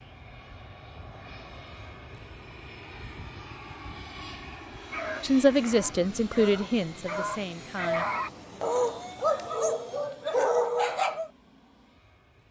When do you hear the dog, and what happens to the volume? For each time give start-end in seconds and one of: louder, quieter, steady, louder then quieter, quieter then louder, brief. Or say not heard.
4.9-11.3 louder.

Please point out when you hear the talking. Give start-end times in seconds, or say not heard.
5.2-8.1.